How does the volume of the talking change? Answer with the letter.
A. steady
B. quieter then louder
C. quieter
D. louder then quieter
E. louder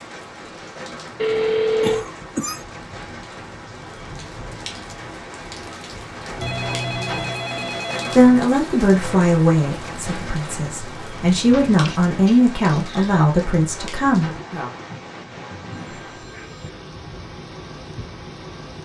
B.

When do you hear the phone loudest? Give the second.
2 s.